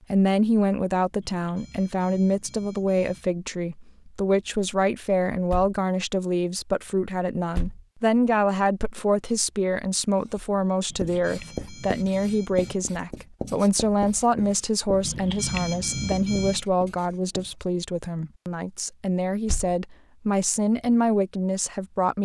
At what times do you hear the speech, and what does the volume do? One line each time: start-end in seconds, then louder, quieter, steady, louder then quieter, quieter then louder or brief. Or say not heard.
0.1-22.1 steady.